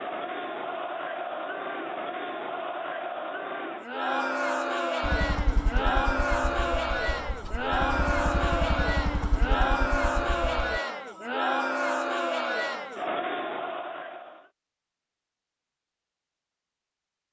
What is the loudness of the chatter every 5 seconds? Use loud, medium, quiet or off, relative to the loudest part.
loud, loud, loud, off.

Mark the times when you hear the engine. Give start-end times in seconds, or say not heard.
5.0-10.8.